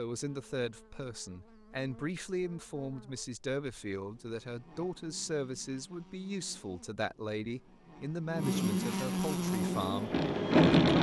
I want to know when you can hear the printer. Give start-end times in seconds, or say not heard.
9.3-10.9.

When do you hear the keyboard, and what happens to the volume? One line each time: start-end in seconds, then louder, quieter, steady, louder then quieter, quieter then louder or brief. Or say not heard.
not heard.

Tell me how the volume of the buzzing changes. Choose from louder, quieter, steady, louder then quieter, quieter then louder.
louder.